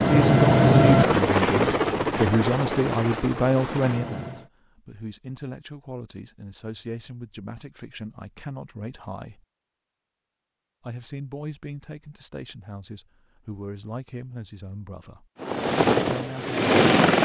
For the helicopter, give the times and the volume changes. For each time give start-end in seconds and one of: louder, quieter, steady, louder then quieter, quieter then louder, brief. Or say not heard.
0.0-4.5 quieter
15.4-17.2 brief.